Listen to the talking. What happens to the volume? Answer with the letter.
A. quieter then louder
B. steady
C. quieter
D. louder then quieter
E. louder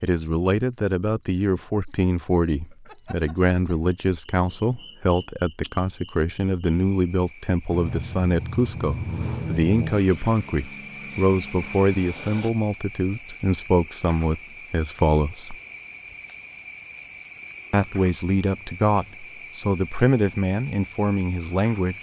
B.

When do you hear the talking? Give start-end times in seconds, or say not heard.
0.0-15.6, 17.7-21.9.